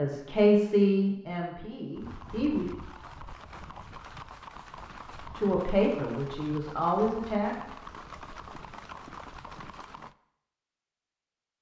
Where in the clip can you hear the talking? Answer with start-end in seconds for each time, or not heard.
0.0-2.6, 5.3-7.5.